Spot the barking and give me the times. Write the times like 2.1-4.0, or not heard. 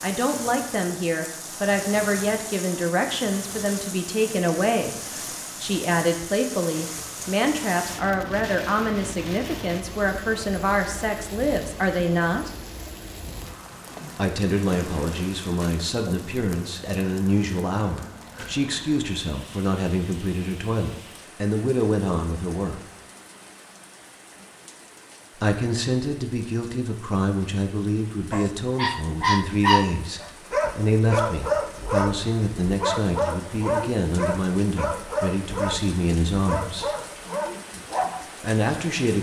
28.3-38.2.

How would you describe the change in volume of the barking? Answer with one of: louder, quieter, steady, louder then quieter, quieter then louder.
quieter.